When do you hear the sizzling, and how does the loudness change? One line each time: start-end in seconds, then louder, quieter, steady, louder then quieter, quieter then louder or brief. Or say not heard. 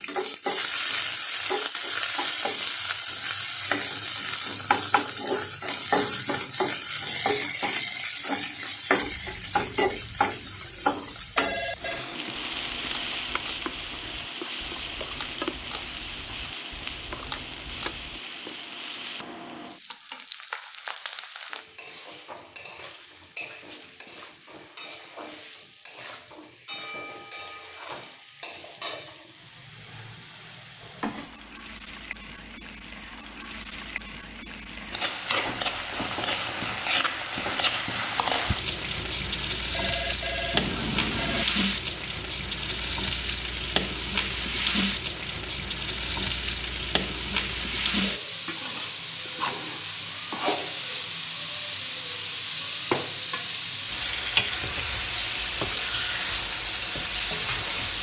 0.0-57.9 quieter then louder.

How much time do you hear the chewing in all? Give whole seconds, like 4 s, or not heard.
9 s.